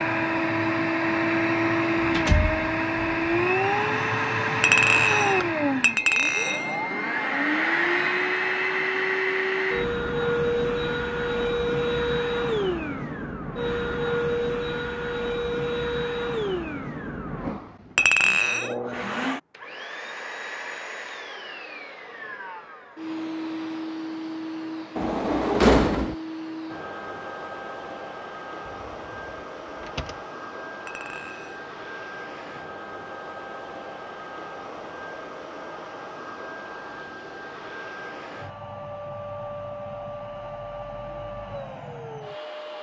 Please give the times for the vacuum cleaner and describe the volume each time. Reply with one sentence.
You can hear the vacuum cleaner from 0.0 to 42.7 s, getting quieter.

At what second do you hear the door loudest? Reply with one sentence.
The volume of the door peaks at 26 seconds.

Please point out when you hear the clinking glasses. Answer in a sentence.
The clinking glasses can be heard from 4.6 to 6.8 s, from 17.9 to 18.8 s and from 30.9 to 31.6 s.